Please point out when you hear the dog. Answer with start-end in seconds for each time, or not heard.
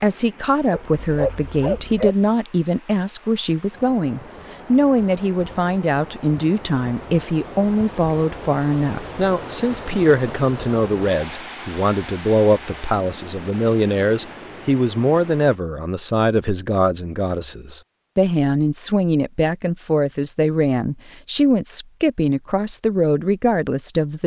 0.7-2.1.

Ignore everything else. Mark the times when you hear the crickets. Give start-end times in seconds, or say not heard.
not heard.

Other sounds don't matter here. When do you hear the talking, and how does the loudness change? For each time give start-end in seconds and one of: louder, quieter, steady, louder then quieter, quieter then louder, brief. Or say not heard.
0.0-24.2 steady.